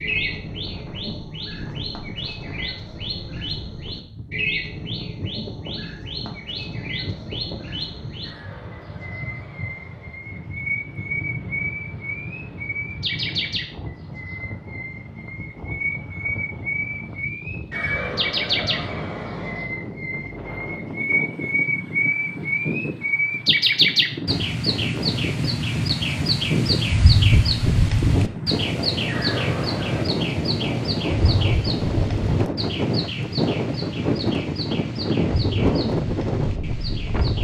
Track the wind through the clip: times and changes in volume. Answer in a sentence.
The wind can be heard from 0.0 to 37.3 s, getting louder.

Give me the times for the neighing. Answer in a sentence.
The neighing can be heard from 8.2 to 10.2 s, from 17.7 to 19.6 s and from 29.1 to 30.1 s.